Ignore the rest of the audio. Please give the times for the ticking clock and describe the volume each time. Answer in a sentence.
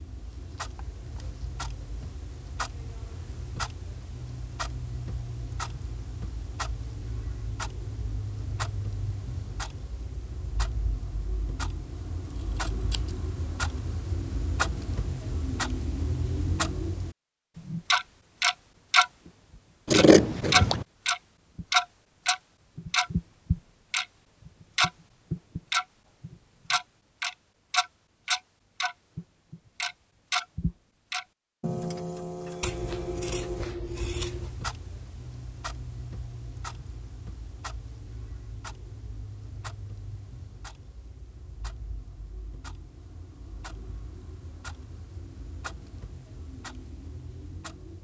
You can hear the ticking clock from 0.0 to 47.9 s, getting louder then quieter.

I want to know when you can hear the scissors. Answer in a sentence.
You can hear the scissors from 12.7 to 13.2 s, from 19.9 to 20.9 s and from 32.6 to 34.5 s.